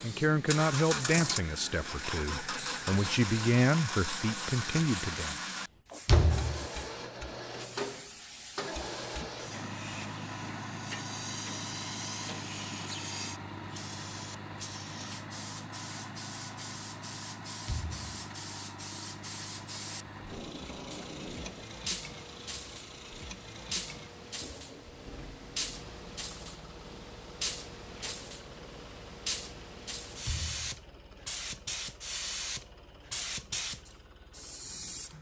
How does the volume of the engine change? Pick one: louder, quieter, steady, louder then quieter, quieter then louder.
quieter.